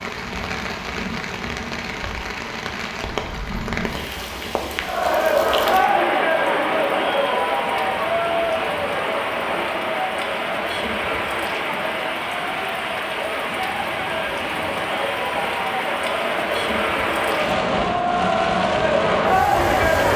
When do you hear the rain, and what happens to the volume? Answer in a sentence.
You can hear the rain from 0.0 to 20.1 s, at a steady volume.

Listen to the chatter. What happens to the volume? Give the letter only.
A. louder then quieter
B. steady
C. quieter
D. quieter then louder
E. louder
D.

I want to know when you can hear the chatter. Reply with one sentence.
You can hear the chatter from 4.8 to 20.1 s.